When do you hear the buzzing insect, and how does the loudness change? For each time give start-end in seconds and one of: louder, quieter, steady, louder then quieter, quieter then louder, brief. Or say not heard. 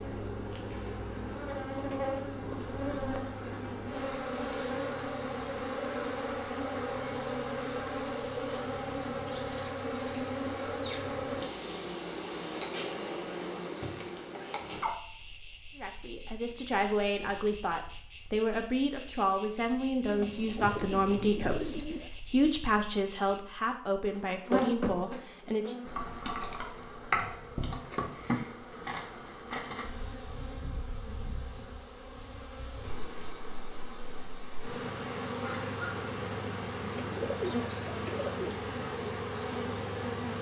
0.0-40.3 steady.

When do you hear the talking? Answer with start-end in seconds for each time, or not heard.
15.8-25.8.